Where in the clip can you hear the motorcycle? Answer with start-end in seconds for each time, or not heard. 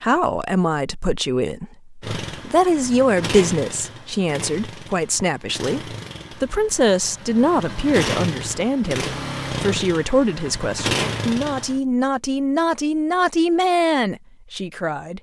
2.0-11.8.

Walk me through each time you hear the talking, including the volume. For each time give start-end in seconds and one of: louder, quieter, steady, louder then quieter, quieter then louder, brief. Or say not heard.
0.0-15.1 steady.